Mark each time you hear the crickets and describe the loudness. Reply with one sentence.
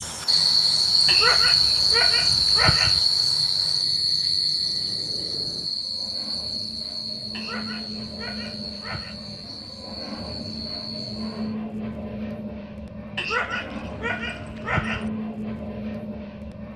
The crickets can be heard from 0.0 to 11.6 s, getting quieter.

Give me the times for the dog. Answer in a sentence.
The dog can be heard from 1.1 to 3.0 s, from 7.3 to 9.2 s and from 13.2 to 15.1 s.